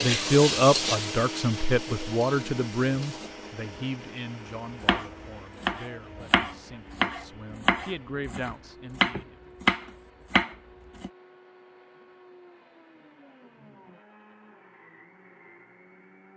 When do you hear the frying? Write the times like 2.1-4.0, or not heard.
0.0-3.4.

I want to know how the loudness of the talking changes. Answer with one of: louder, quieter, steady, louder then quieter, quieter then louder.
quieter then louder.